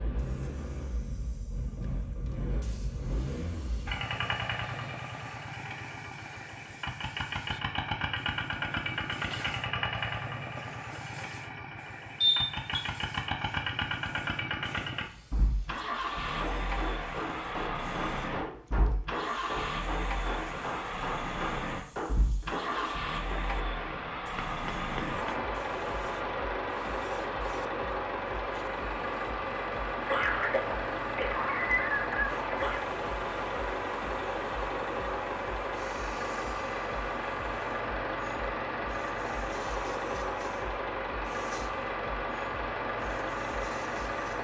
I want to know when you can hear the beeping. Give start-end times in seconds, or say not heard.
12.2-12.8.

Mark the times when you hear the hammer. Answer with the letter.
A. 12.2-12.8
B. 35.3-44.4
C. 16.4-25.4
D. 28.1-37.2
C.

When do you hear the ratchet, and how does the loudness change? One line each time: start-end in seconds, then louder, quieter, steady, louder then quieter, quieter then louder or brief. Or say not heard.
not heard.